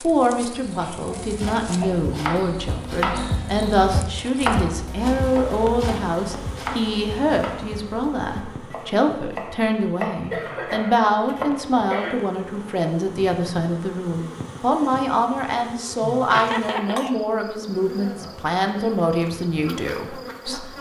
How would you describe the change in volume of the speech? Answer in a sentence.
The loudness of the speech stays about the same.